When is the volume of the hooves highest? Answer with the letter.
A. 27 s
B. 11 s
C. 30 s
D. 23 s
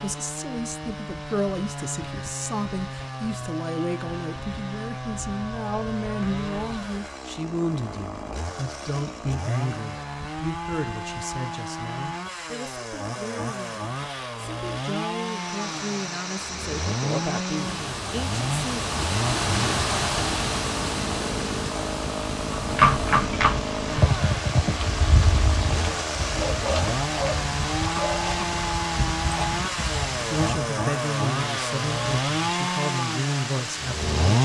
D.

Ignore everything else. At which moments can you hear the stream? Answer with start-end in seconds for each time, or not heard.
15.1-34.4.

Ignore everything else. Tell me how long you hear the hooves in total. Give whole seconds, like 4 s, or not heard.
8 s.